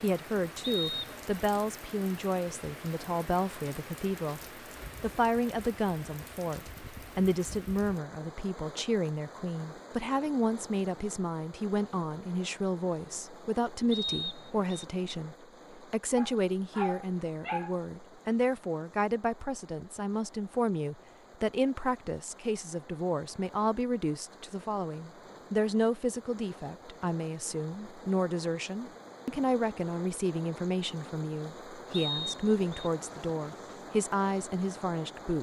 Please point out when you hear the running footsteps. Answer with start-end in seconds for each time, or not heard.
not heard.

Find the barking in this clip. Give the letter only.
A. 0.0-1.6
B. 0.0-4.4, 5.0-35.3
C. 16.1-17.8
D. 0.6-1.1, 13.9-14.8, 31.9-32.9
C.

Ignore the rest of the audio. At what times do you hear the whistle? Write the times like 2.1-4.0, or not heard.
0.6-1.1, 13.9-14.8, 31.9-32.9.